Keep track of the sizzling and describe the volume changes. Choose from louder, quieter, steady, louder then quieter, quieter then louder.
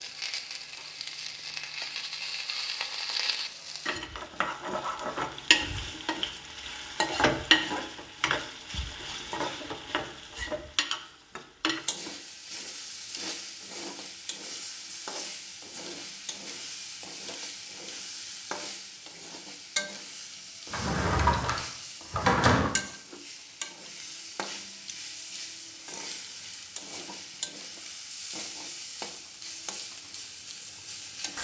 quieter.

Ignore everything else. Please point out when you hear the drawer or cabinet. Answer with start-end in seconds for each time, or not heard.
20.7-22.7.